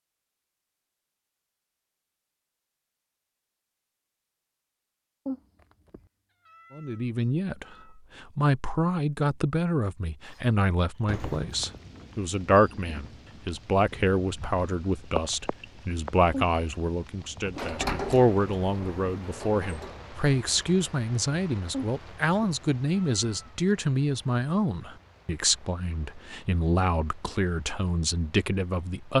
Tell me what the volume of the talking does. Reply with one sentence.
The loudness of the talking stays about the same.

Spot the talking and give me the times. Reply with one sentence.
The talking can be heard from 6.8 to 29.1 s.